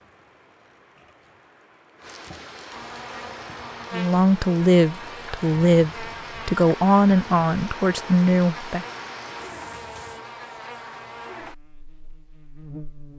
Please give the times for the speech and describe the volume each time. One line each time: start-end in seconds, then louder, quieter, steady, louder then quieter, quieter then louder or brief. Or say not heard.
3.9-8.8 steady.